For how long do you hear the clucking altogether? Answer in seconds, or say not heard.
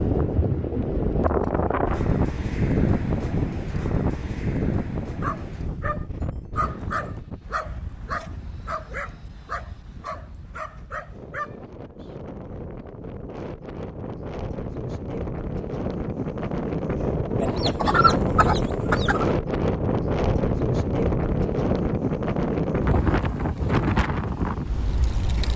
2 s.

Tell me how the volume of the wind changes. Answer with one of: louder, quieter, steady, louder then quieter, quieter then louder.
quieter then louder.